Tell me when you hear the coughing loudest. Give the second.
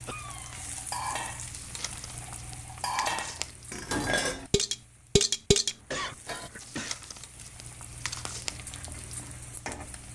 6 s.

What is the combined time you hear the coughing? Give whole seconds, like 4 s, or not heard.
2 s.